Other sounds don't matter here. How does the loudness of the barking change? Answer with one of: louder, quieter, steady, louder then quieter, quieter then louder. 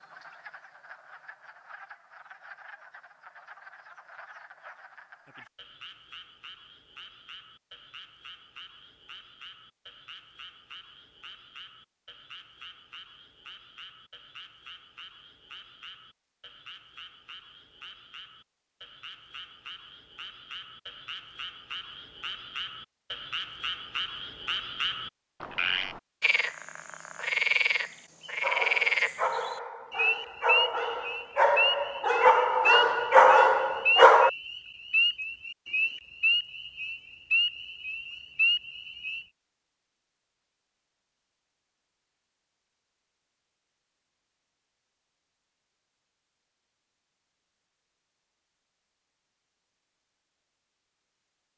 louder.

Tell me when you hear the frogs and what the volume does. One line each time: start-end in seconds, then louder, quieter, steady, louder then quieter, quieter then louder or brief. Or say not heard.
0.0-39.2 louder.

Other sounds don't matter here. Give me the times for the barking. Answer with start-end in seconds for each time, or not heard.
28.4-34.3.